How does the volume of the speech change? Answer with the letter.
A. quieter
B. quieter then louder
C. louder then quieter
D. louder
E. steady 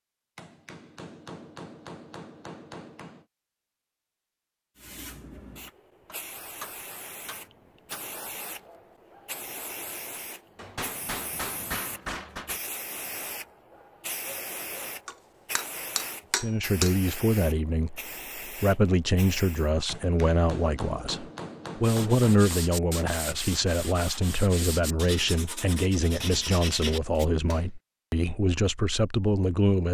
E.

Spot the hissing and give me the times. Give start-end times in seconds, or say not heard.
4.8-19.7.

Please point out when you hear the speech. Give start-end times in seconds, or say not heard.
16.4-29.8.